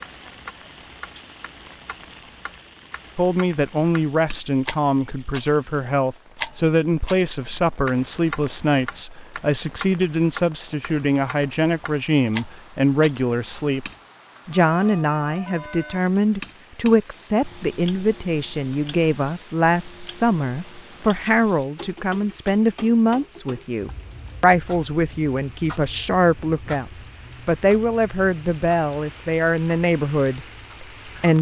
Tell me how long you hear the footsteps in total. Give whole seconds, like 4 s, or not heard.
not heard.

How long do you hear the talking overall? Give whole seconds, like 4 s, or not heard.
28 s.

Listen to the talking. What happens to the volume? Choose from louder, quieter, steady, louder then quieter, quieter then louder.
steady.